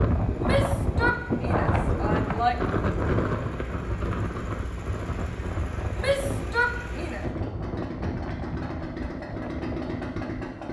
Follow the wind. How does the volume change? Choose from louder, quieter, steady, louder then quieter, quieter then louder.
quieter.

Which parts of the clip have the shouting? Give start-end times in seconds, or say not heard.
0.4-2.5, 6.0-7.2.